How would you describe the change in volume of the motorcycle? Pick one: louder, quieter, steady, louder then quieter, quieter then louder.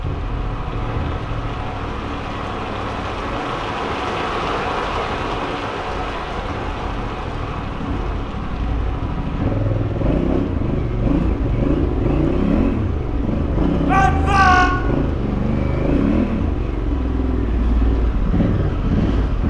louder.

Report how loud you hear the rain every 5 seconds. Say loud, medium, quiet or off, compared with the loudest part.
loud, loud, quiet, quiet.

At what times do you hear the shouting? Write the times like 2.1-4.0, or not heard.
13.8-14.8.